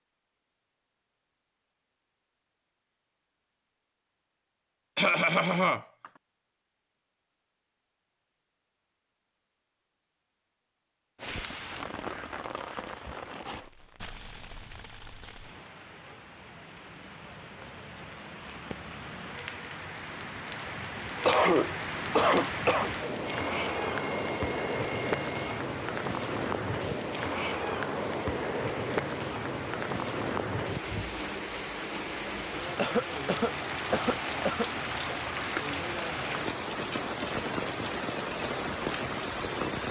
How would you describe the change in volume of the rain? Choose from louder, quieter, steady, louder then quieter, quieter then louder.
louder.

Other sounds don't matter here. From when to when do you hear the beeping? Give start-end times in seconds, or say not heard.
23.2-25.6.